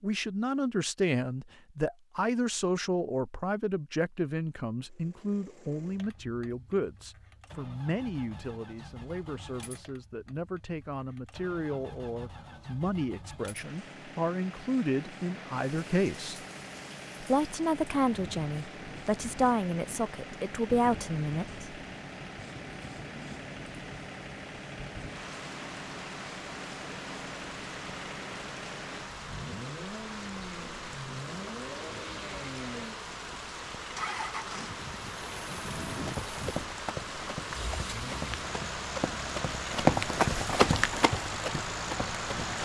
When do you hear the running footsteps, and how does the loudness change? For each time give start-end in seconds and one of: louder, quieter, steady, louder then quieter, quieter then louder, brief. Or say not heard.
35.9-42.5 louder then quieter.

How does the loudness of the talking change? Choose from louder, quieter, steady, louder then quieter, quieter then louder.
quieter then louder.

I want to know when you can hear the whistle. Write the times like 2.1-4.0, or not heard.
not heard.